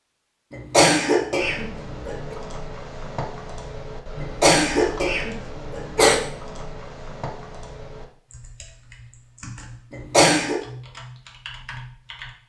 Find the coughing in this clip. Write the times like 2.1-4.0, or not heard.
0.5-2.4, 4.2-6.2, 9.9-10.6.